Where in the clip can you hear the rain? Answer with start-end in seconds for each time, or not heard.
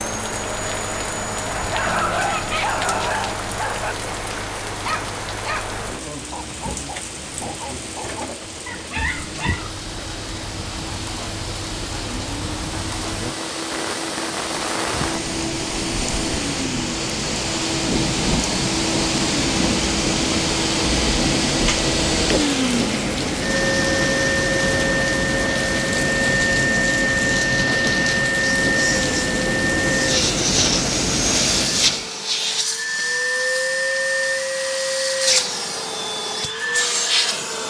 0.0-32.1.